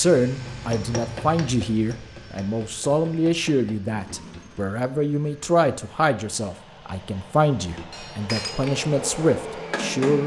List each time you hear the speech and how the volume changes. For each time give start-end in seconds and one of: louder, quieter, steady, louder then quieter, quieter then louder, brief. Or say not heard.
0.0-10.2 steady.